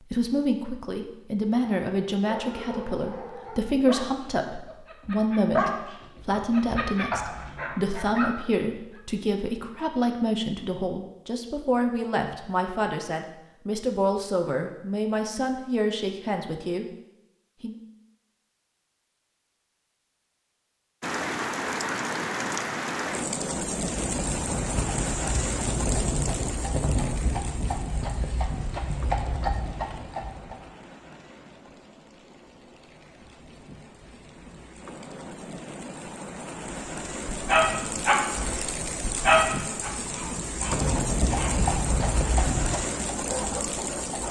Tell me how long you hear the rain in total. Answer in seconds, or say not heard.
23 s.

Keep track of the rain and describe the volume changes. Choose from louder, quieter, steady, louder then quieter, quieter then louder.
quieter then louder.